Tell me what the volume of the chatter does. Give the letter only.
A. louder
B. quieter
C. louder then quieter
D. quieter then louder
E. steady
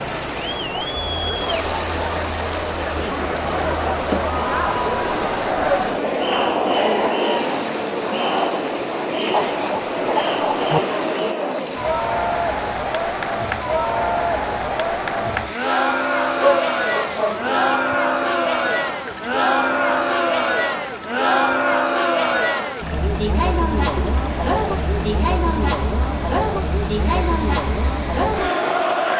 E.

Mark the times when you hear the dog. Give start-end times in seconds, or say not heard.
9.3-10.8, 16.4-17.6.